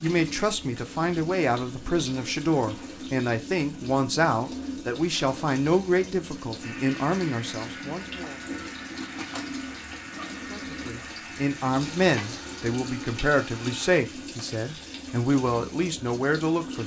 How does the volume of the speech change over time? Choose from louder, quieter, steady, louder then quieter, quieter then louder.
steady.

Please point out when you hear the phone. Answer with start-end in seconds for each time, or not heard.
not heard.